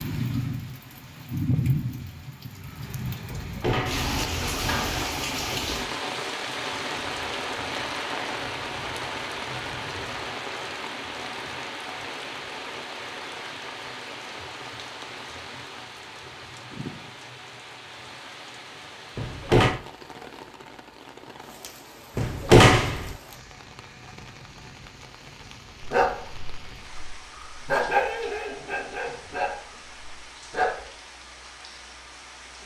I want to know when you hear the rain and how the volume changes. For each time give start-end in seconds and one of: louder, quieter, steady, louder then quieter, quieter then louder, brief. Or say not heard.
0.0-32.6 quieter.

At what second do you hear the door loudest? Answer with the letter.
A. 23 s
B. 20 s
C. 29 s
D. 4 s
A.